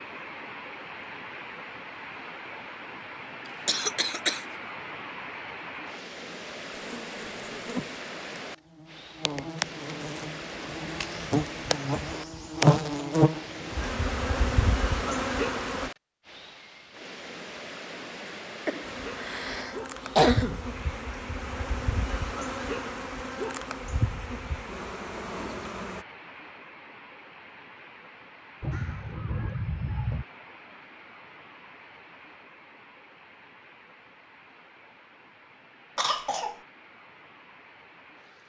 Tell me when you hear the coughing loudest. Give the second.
20 s.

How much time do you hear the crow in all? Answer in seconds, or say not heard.
2 s.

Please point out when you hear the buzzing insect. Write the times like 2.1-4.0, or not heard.
6.7-15.9, 18.8-26.1.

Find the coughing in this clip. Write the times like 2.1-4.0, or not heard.
3.6-4.5, 18.6-20.6, 36.0-36.5.